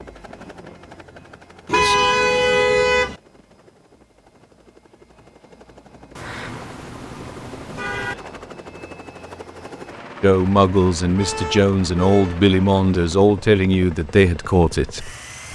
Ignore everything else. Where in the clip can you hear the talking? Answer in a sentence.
You can hear the talking from 10.2 to 15.5 s.